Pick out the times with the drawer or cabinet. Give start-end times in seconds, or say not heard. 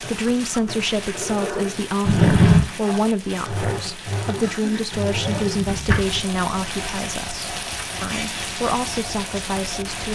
2.0-2.6, 5.1-6.2.